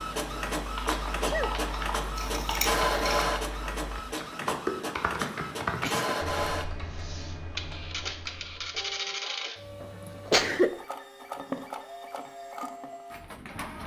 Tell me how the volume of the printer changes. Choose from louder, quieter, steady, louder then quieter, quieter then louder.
quieter.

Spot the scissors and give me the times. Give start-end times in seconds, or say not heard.
2.1-3.2.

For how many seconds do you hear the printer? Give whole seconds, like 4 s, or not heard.
14 s.